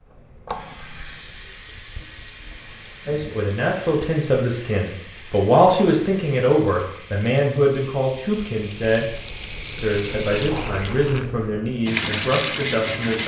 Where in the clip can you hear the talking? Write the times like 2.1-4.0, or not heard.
3.0-9.1, 9.8-13.2.